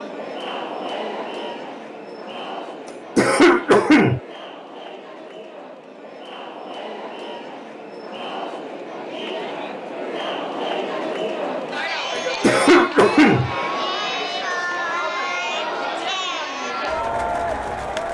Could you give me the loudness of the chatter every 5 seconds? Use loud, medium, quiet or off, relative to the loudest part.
medium, medium, loud, loud.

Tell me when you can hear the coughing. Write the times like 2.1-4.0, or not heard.
3.1-4.2, 12.4-13.6.